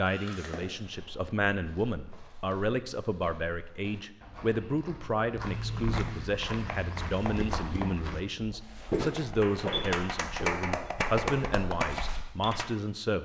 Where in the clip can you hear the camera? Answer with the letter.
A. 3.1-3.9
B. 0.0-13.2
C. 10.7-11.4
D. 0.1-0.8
D.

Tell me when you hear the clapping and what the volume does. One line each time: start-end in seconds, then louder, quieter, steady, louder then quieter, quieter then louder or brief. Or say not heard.
6.4-12.7 quieter then louder.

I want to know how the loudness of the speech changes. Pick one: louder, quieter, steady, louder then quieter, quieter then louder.
steady.